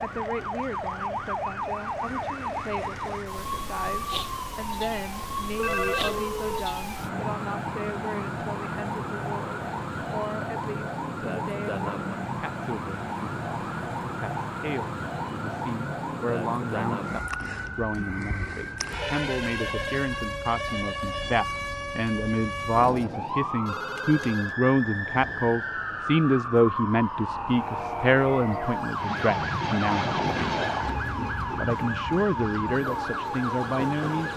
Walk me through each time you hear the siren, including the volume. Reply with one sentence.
The siren can be heard from 0.0 to 34.3 s, at a steady volume.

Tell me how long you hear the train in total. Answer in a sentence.
You can hear the train for 7 seconds altogether.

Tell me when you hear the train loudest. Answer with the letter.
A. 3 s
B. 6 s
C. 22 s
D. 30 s
D.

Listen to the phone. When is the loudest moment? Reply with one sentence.
The volume of the phone peaks at 6 seconds.